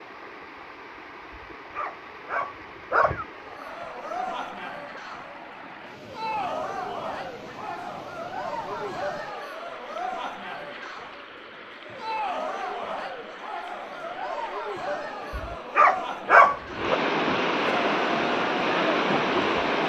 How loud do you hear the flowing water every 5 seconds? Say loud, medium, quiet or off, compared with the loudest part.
quiet, quiet, quiet, loud.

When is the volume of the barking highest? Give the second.
16 s.